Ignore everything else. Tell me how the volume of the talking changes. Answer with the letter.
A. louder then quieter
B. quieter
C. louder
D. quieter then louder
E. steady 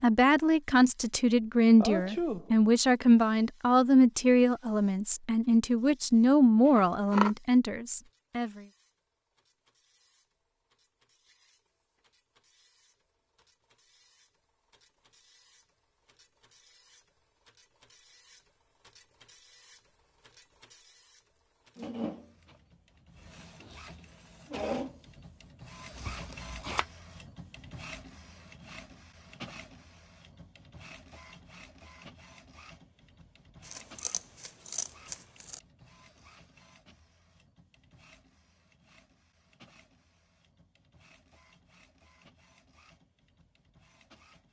E.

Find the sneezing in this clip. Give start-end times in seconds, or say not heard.
1.8-2.5.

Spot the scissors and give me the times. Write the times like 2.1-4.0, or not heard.
6.7-7.3, 25.9-26.9, 33.6-35.6.